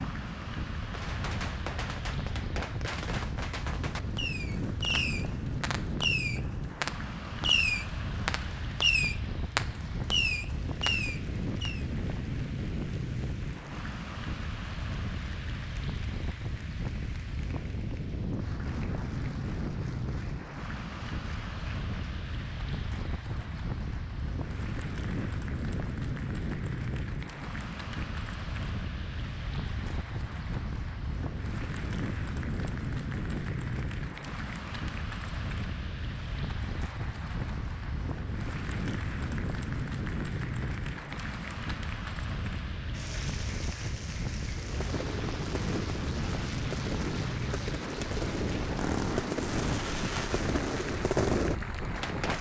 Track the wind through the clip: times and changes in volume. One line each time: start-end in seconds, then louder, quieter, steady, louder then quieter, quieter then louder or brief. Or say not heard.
0.0-52.3 steady.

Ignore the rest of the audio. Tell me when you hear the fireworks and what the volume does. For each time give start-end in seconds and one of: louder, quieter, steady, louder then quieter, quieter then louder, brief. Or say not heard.
0.8-11.8 louder
44.5-52.3 louder.